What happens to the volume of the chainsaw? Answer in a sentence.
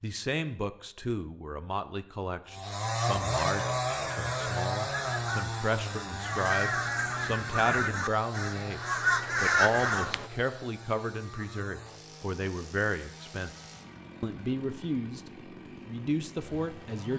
The volume of the chainsaw goes down.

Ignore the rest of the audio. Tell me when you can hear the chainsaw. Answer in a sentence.
You can hear the chainsaw from 2.5 to 17.1 s.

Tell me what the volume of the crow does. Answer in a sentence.
The volume of the crow goes up.